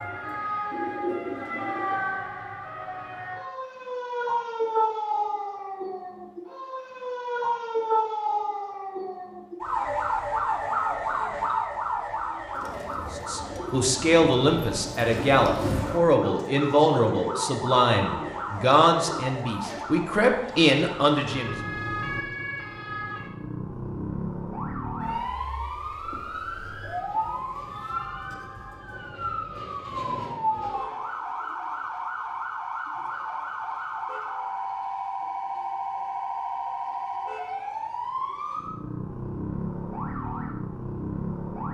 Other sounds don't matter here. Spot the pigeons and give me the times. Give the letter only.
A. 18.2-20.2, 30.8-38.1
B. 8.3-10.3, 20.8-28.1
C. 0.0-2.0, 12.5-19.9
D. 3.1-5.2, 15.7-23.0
C.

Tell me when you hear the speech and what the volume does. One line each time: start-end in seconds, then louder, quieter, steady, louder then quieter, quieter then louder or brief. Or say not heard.
13.2-21.6 steady.